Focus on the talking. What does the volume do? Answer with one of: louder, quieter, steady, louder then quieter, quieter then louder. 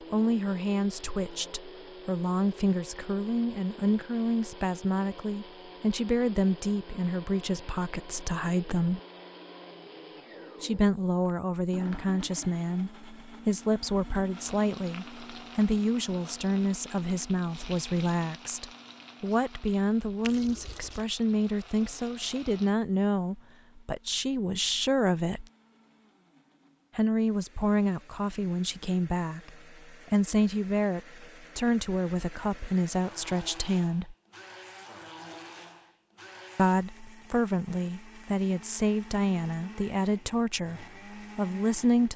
steady.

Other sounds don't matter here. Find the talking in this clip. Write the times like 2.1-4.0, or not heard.
0.1-9.0, 10.6-25.4, 26.9-34.1, 36.5-42.1.